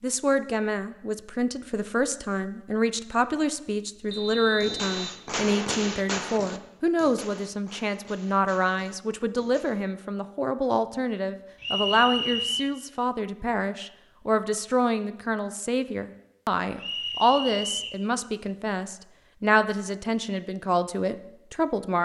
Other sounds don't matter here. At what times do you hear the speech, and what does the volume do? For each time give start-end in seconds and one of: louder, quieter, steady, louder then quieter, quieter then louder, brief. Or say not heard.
0.0-22.0 steady.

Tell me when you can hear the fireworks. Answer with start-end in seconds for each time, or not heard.
4.6-9.8.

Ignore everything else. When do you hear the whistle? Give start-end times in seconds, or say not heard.
4.1-5.2, 11.6-12.7, 16.8-18.0.